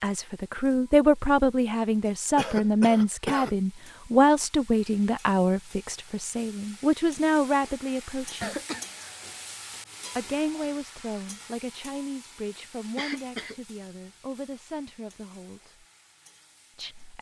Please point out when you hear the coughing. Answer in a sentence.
The coughing can be heard from 2.4 to 3.5 s, from 8.4 to 9.4 s and from 12.9 to 13.6 s.